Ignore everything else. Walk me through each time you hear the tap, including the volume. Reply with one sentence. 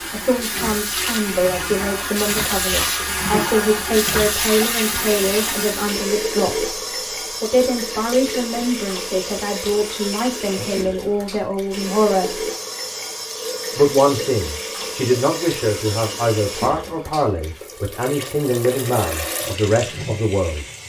The tap can be heard from 0.0 to 20.8 s, getting quieter.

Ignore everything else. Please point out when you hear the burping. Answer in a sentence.
The burping can't be heard in this clip.